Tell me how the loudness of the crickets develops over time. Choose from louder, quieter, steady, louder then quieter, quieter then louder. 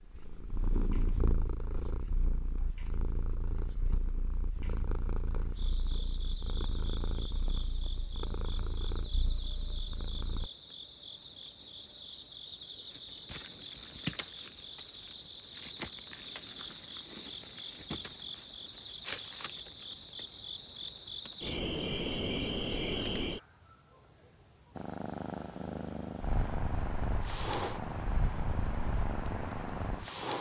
louder then quieter.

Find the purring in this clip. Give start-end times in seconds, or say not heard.
0.1-10.5, 24.8-30.3.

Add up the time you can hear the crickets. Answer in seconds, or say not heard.
30 s.